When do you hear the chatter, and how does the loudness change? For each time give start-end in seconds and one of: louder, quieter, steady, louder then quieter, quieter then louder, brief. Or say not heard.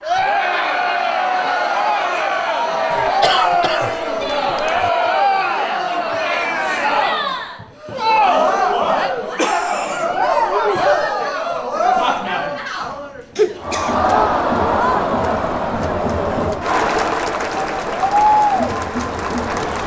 0.0-19.8 steady.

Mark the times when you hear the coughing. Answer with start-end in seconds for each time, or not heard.
2.9-4.9, 9.3-10.2, 13.3-14.1.